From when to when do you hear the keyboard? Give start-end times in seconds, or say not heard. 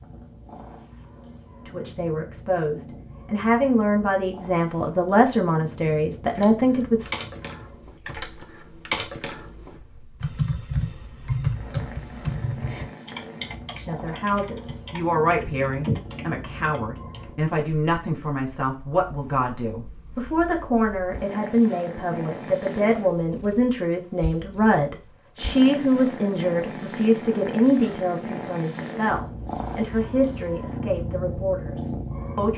6.2-17.3.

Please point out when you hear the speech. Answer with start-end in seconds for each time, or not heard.
1.6-7.1, 13.8-32.5.